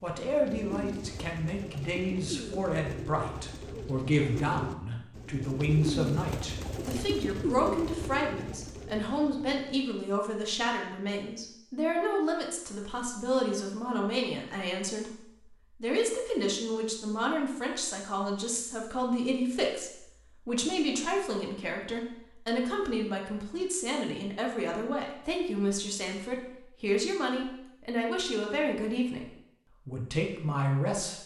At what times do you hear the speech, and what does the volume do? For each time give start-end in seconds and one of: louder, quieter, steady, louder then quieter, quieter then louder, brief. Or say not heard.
0.0-31.2 steady.